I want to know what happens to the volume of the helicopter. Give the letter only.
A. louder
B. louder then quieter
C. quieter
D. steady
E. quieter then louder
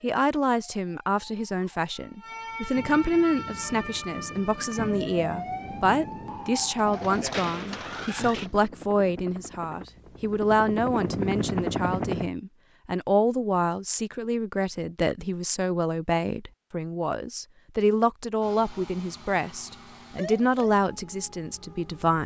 A.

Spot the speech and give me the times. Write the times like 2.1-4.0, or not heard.
0.0-22.2.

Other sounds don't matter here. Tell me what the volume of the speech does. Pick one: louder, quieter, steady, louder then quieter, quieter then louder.
steady.